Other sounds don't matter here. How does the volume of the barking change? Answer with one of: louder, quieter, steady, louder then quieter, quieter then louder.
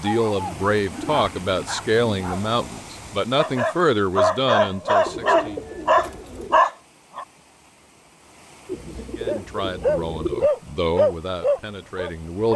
quieter then louder.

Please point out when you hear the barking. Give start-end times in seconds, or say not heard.
0.0-7.2, 9.2-12.5.